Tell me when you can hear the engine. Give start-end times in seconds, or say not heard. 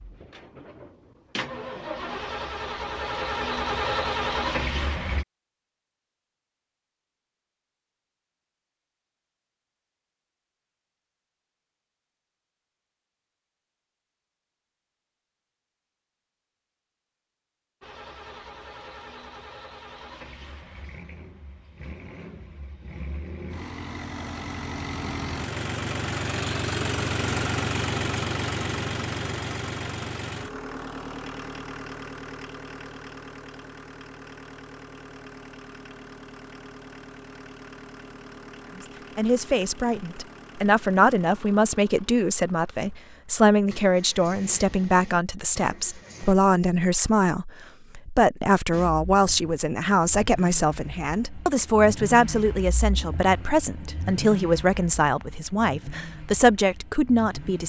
0.0-5.2, 17.8-46.4, 48.7-57.6.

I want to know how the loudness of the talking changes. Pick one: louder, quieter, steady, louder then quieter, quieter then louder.
steady.